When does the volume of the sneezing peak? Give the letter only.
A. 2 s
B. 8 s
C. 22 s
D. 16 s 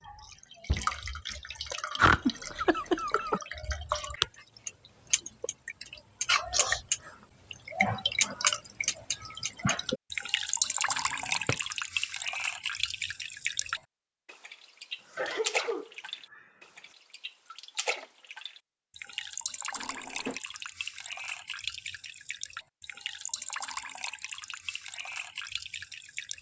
A.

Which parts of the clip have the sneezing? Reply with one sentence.
The sneezing can be heard from 1.9 to 3.4 s and from 15.0 to 16.9 s.